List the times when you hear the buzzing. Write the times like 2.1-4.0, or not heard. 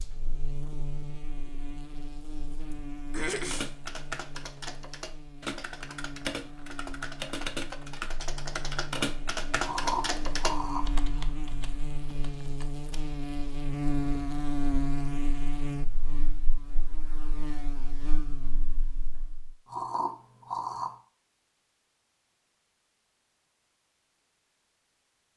0.0-19.6.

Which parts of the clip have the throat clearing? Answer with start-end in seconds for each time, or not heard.
3.1-3.7, 9.6-11.2, 19.6-20.9.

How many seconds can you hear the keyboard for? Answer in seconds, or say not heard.
10 s.